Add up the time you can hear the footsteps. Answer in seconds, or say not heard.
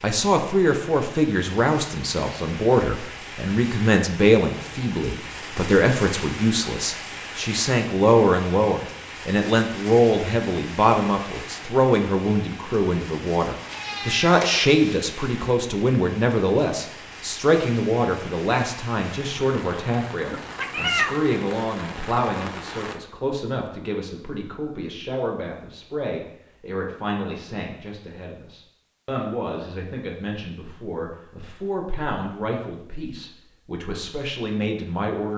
not heard.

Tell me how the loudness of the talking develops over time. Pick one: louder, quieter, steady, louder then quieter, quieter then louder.
quieter.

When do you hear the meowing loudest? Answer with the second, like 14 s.
21 s.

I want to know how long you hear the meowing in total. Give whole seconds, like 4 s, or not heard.
2 s.